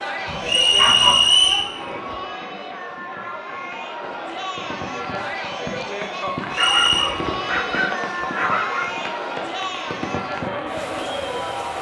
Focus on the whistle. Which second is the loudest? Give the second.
1 s.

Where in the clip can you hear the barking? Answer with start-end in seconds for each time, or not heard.
0.2-1.3, 6.5-8.9.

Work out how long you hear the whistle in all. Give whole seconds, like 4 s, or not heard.
2 s.